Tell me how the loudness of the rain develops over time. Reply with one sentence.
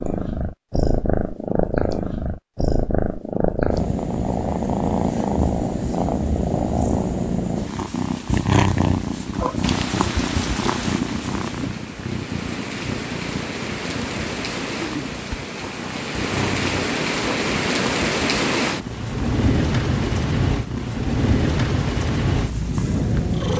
The volume of the rain goes up.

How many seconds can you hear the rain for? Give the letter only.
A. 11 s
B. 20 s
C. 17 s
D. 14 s
D.